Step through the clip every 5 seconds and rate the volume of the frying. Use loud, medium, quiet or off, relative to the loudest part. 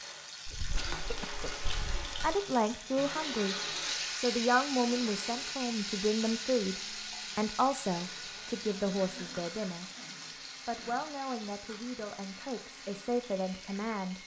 loud, loud, medium.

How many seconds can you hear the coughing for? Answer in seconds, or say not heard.
4 s.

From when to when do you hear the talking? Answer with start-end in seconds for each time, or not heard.
2.2-3.5, 4.2-9.8, 10.7-14.2.